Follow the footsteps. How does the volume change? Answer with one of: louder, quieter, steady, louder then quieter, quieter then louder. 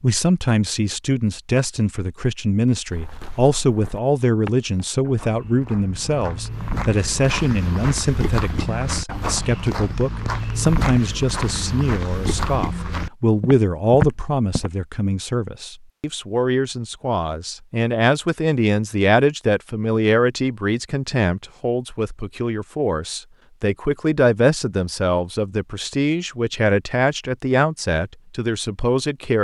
louder.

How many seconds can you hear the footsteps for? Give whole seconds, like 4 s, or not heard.
12 s.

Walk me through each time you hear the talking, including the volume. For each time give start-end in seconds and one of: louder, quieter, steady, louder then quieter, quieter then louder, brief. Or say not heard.
0.0-29.3 steady.